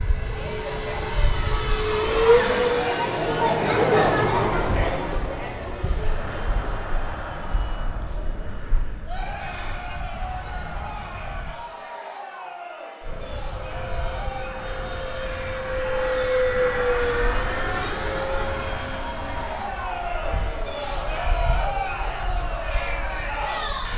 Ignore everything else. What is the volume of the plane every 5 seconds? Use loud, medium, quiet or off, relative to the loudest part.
loud, quiet, quiet, loud, quiet.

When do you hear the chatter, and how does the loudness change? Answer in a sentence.
You can hear the chatter from 0.0 to 23.9 s, getting quieter then louder.